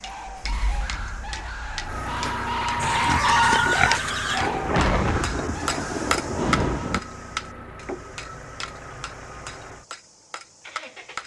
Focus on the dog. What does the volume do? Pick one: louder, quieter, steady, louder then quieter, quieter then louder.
louder then quieter.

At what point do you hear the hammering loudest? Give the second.
6 s.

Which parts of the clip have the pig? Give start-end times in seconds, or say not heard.
2.8-4.5.